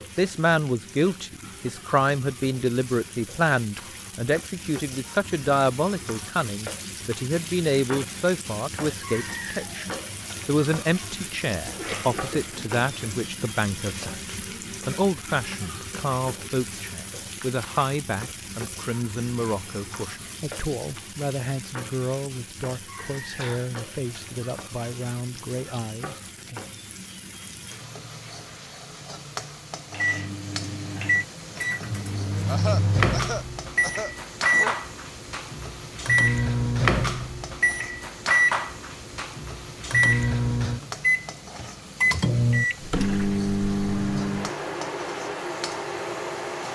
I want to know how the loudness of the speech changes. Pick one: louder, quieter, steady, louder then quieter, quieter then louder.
quieter.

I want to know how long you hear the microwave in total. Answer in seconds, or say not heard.
17 s.